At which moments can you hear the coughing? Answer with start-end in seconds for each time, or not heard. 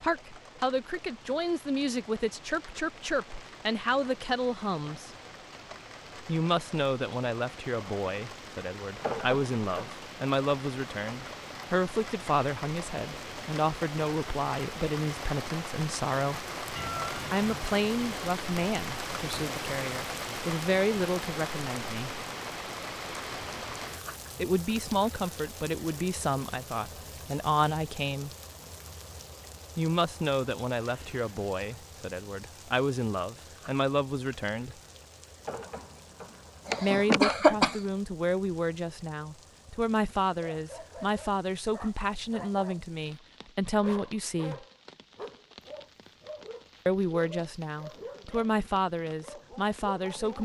9.0-10.0, 35.5-37.9.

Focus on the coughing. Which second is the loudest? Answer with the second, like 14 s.
37 s.